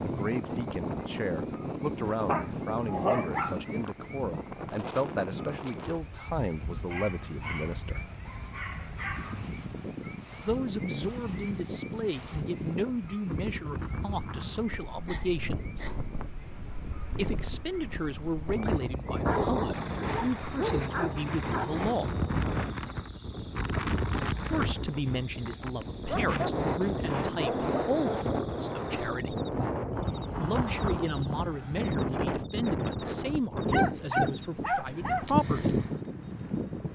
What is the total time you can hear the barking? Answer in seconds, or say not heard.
12 s.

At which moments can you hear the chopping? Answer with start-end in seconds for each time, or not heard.
not heard.